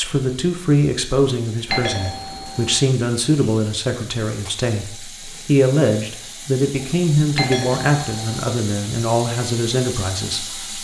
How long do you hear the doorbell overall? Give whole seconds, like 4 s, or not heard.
2 s.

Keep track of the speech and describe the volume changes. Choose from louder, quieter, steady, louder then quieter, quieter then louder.
steady.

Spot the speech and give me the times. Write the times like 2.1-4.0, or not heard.
0.0-10.8.